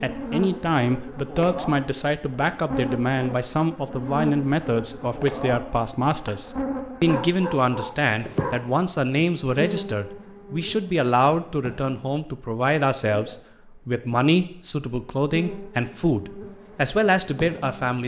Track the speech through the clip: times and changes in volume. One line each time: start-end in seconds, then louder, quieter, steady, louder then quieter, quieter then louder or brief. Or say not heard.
0.0-18.0 steady.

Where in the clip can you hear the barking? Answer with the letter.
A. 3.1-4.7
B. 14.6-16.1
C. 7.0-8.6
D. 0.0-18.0
C.